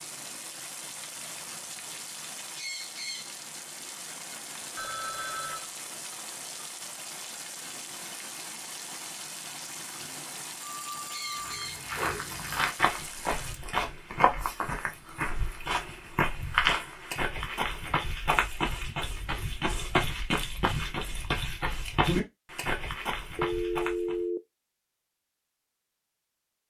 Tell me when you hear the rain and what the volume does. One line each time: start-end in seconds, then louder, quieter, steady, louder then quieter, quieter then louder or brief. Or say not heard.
0.0-13.6 steady.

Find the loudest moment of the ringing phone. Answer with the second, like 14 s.
24 s.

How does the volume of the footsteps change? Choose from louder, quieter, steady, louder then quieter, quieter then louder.
steady.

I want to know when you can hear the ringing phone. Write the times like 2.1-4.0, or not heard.
4.8-5.7, 10.6-11.5, 23.4-24.4.